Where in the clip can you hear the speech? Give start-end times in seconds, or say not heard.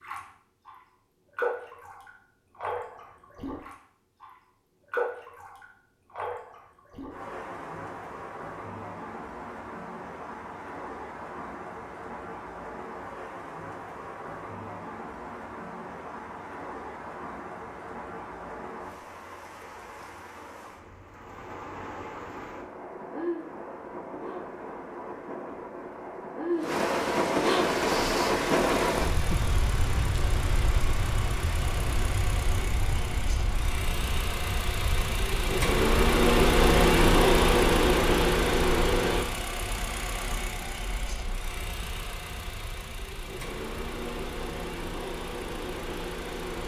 not heard.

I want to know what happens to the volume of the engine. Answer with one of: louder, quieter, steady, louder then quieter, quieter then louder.
louder then quieter.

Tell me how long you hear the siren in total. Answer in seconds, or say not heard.
not heard.